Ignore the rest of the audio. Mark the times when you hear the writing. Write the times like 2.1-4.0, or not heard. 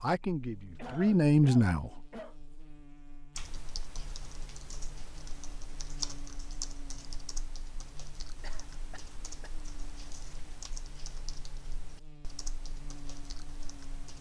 not heard.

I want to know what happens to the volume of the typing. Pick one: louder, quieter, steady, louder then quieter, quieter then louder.
louder then quieter.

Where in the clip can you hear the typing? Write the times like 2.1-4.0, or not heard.
3.4-14.1.